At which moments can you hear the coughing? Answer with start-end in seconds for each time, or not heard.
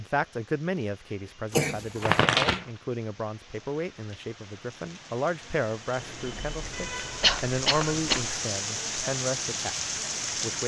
1.5-2.2, 7.2-8.2.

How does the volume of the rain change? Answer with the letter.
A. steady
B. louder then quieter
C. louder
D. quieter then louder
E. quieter
C.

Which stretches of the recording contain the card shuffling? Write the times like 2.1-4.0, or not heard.
2.0-2.6, 6.0-8.4.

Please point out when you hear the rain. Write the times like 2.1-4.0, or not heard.
0.0-10.6.